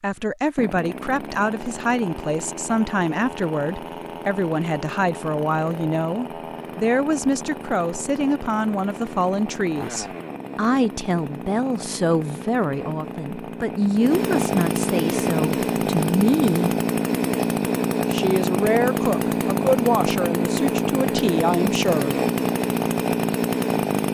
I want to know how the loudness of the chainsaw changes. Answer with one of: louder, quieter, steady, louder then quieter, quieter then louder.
louder.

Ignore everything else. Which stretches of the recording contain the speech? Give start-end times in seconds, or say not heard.
0.0-16.7, 18.1-22.1.